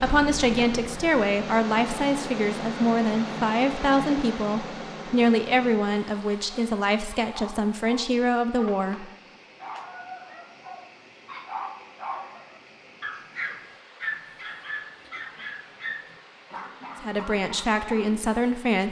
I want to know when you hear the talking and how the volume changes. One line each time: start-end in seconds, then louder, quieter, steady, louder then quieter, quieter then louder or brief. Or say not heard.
0.0-9.1 steady
17.0-18.8 brief.